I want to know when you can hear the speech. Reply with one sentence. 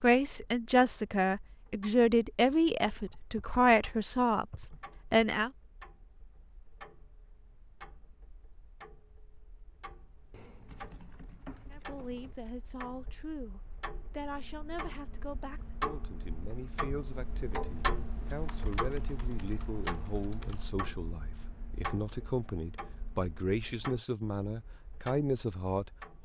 You can hear the speech from 0.0 to 5.5 s and from 11.7 to 26.1 s.